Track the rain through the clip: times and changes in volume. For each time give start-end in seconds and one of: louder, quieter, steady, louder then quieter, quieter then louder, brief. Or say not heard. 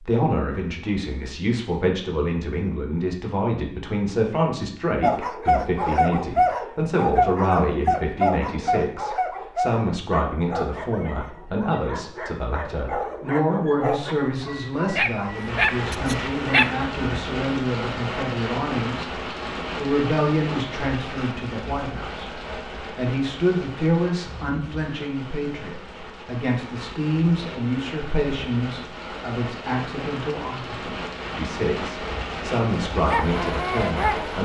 15.2-34.4 quieter then louder.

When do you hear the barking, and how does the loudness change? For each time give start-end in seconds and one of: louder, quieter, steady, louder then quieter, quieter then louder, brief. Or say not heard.
5.0-16.8 quieter then louder
33.0-34.4 brief.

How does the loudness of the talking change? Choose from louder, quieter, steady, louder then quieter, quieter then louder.
steady.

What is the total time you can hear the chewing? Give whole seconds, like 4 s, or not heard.
not heard.